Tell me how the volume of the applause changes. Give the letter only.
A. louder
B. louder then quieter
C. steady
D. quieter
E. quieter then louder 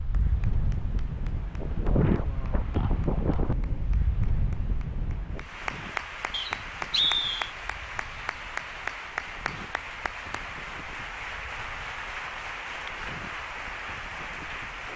A.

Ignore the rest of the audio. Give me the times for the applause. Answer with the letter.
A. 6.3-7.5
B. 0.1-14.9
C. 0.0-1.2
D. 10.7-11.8
B.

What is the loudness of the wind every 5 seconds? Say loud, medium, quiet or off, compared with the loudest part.
loud, quiet, quiet.